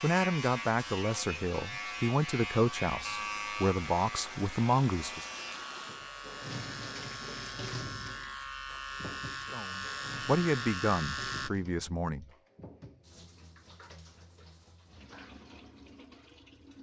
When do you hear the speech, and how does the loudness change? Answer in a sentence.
The speech can be heard from 0.0 to 5.2 s, at a steady volume; and briefly from 9.3 to 12.3 s.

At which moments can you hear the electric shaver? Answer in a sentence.
The electric shaver can be heard from 0.0 to 11.5 s.